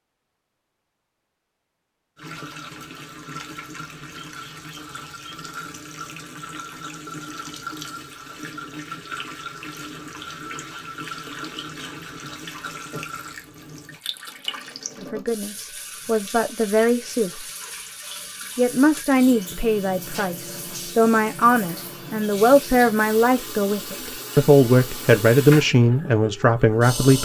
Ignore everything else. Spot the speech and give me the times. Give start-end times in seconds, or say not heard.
15.0-17.4, 18.6-27.2.